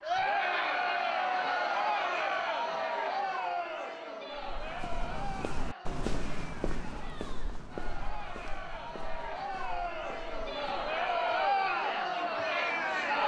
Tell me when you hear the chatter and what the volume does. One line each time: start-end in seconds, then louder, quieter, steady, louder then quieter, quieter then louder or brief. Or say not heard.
0.0-13.2 quieter then louder.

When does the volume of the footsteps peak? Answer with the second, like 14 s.
6 s.